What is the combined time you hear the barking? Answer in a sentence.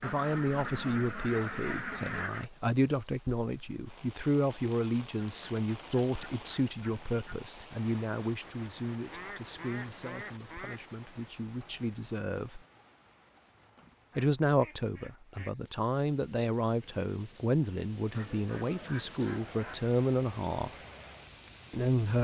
The barking can't be heard in this clip.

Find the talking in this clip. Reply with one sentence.
The talking can be heard from 0.0 to 12.7 s, from 14.2 to 20.8 s and from 21.7 to 22.1 s.